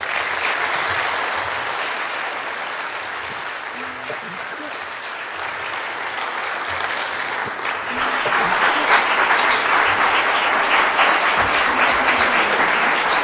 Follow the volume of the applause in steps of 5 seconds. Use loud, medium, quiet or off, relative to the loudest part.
medium, loud, loud.